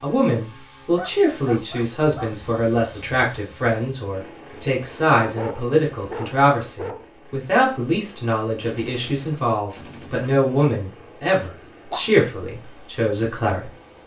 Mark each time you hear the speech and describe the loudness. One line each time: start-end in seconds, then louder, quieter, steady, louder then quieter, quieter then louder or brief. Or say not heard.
0.0-13.7 steady.